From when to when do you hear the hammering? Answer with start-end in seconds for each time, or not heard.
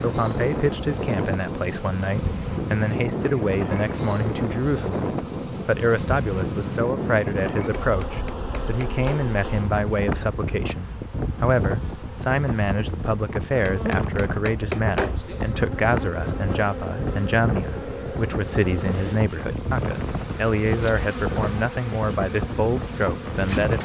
7.8-9.3, 13.7-15.2.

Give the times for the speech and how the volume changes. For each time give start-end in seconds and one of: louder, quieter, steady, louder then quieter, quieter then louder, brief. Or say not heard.
0.0-23.8 steady.